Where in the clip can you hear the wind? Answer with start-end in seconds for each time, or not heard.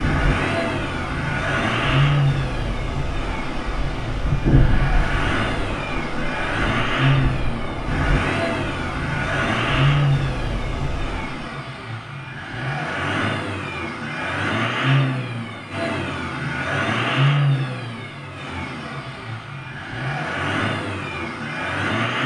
0.0-11.3.